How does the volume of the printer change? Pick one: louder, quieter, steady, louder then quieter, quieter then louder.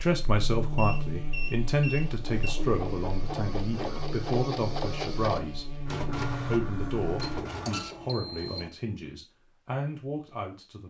steady.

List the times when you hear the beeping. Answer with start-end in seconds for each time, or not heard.
0.8-2.5, 7.5-8.7.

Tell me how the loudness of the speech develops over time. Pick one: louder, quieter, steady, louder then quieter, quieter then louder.
quieter.